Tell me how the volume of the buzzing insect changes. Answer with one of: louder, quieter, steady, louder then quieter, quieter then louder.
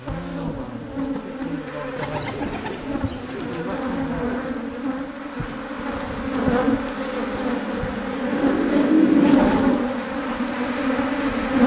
louder.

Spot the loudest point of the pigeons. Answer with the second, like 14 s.
9 s.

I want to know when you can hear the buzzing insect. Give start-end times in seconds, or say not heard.
0.0-11.6.